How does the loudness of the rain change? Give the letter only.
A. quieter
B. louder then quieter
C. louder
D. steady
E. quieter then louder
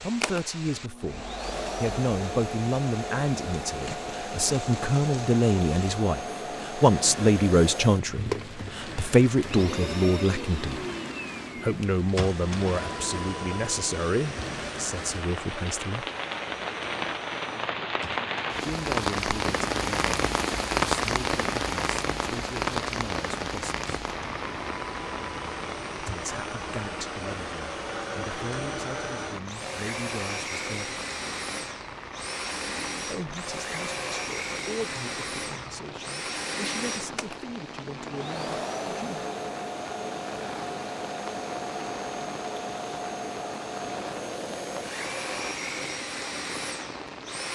B.